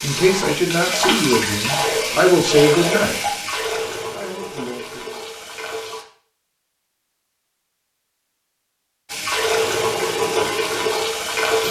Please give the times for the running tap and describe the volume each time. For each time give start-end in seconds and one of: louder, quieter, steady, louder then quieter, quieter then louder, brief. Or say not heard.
0.0-6.0 quieter
9.1-11.6 brief.